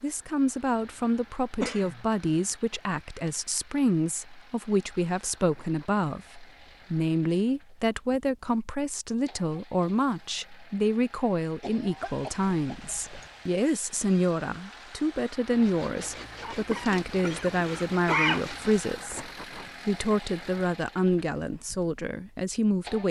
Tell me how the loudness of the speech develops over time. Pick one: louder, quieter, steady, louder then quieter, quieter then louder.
steady.